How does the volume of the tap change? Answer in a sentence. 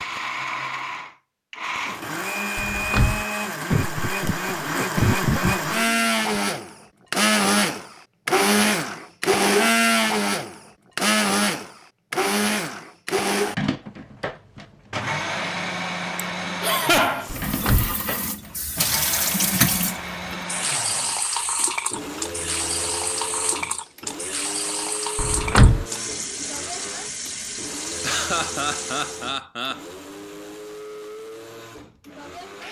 The loudness of the tap goes down.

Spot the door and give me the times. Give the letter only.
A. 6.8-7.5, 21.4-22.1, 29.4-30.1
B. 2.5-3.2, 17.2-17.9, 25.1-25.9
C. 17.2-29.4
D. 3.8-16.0
B.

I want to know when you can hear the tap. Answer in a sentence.
You can hear the tap from 17.2 to 29.4 s.